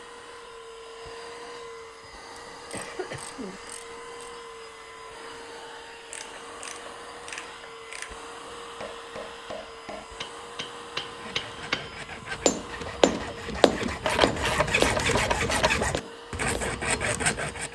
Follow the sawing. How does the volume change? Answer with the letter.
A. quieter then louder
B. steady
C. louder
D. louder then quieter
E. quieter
C.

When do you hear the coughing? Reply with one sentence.
The coughing can be heard from 2.0 to 3.6 s.